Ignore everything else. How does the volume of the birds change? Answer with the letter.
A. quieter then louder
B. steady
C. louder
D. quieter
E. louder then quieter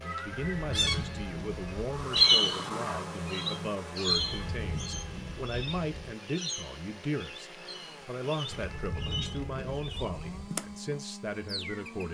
D.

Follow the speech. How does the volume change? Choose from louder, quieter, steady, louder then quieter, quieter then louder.
steady.